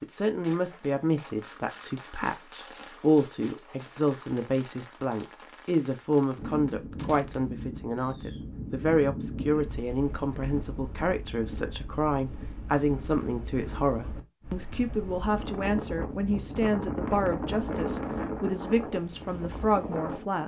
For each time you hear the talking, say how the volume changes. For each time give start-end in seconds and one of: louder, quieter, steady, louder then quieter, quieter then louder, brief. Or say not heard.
0.0-20.4 steady.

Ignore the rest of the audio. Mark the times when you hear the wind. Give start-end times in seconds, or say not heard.
6.3-20.4.